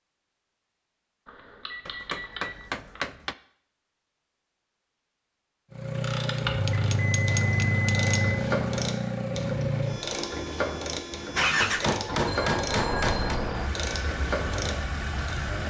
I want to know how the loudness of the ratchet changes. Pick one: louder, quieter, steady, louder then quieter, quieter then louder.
steady.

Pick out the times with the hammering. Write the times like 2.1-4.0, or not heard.
1.9-3.4, 6.3-8.2, 11.6-13.4.